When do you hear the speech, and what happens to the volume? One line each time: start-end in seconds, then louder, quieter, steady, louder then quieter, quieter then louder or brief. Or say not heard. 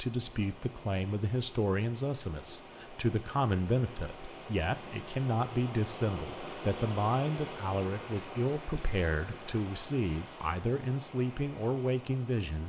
0.0-12.6 steady.